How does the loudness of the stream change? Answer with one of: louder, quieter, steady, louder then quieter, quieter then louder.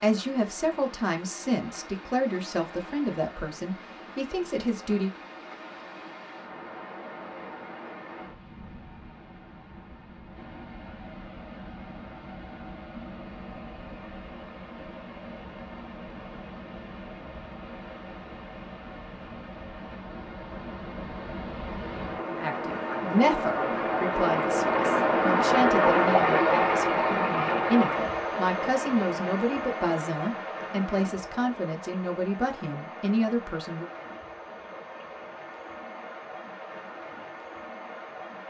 louder then quieter.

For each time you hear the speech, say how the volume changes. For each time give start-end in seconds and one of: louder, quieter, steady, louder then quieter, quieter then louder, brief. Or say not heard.
0.0-5.1 steady
22.2-33.9 steady.